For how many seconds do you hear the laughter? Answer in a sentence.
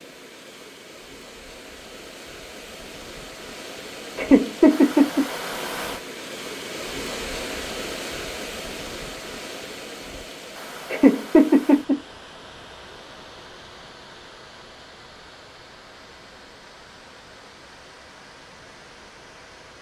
The laughter can be heard for 2 seconds in total.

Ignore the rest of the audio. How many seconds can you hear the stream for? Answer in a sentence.
You can hear the stream for 20 seconds altogether.